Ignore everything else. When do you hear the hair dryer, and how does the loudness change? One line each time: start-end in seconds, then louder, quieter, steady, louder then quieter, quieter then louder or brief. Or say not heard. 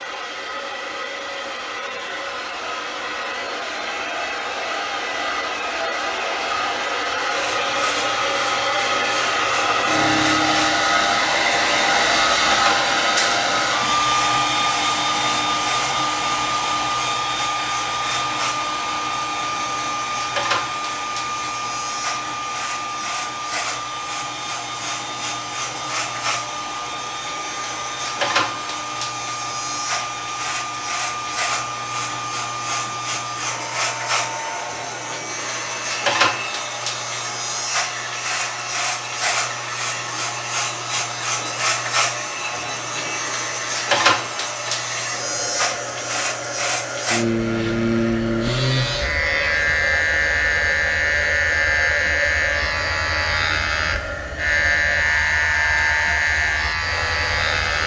0.0-57.8 quieter.